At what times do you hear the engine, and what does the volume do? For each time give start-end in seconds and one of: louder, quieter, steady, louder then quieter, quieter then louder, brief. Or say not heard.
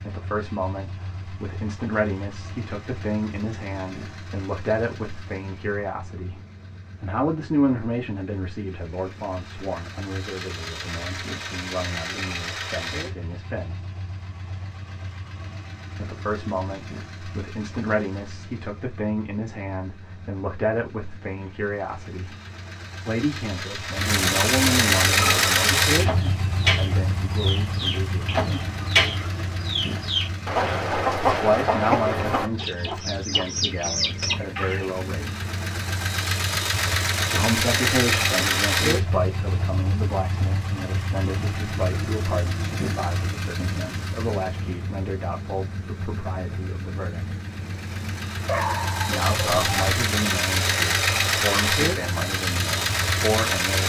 0.0-53.8 louder.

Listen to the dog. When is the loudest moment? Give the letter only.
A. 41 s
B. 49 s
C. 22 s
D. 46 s
B.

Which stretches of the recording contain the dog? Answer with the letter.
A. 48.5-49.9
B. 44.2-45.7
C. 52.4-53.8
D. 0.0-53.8
A.